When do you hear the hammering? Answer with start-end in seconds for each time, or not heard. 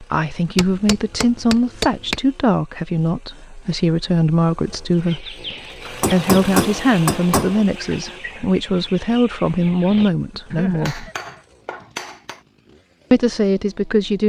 0.6-2.2, 6.0-7.7, 10.8-12.4.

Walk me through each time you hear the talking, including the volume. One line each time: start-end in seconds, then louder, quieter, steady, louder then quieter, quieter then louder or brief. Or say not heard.
0.0-11.1 steady
13.1-14.2 brief.